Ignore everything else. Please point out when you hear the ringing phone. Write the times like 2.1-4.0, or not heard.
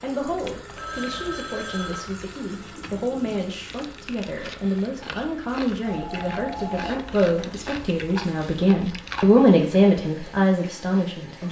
0.8-2.1, 5.8-7.7.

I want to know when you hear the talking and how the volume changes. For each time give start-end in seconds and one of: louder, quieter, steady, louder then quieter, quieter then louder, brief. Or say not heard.
0.0-11.4 louder.